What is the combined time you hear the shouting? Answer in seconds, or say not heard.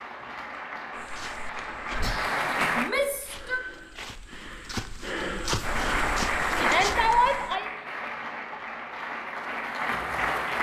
2 s.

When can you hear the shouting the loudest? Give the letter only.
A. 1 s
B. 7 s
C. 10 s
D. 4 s
B.